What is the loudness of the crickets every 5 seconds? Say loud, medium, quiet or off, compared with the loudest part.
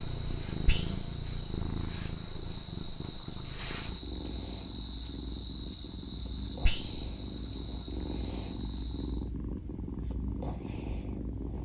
loud, loud, off.